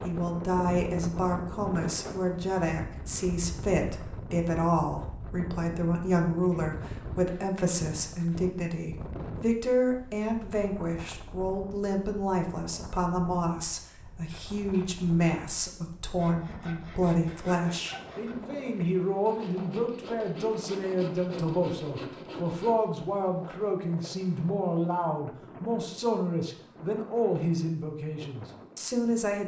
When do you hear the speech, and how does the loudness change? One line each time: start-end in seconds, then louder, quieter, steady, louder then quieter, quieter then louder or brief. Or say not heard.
0.0-29.4 steady.